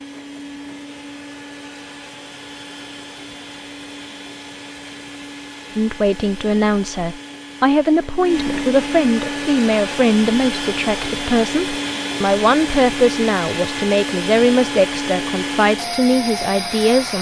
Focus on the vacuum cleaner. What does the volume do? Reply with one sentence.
The loudness of the vacuum cleaner goes up.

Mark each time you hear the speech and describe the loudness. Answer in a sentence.
The speech can be heard from 5.8 to 17.1 s, at a steady volume.